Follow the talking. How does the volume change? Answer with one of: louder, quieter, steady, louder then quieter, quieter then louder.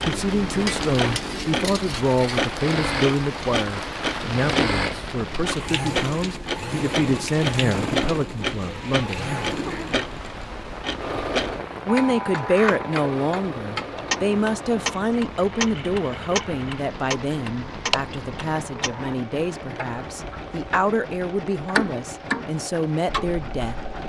steady.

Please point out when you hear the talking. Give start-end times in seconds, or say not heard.
0.0-9.3, 11.8-23.8.